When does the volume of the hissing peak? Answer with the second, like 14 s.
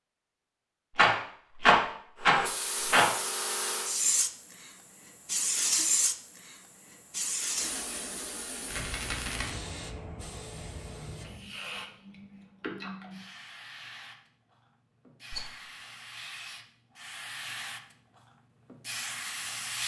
6 s.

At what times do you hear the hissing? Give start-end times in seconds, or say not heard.
2.2-19.8.